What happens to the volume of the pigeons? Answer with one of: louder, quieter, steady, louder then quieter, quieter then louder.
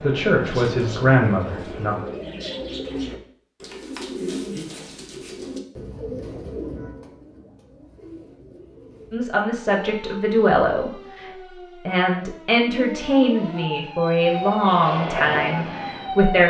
quieter.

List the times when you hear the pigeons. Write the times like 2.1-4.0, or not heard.
0.4-9.3.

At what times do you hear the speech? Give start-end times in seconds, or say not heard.
0.0-1.9, 9.1-16.4.